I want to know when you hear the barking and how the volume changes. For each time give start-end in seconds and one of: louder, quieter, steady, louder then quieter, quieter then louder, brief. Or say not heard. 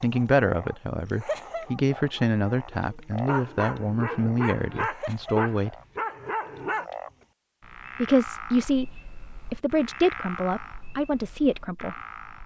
0.0-6.8 louder.